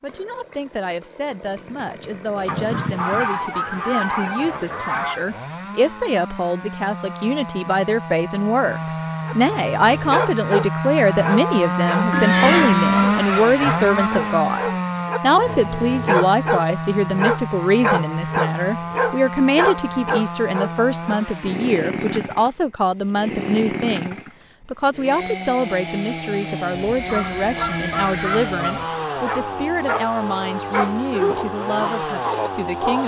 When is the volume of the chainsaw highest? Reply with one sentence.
The loudest moment of the chainsaw is at 13 seconds.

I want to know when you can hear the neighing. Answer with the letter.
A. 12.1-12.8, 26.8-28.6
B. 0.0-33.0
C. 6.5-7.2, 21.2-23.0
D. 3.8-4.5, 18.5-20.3
A.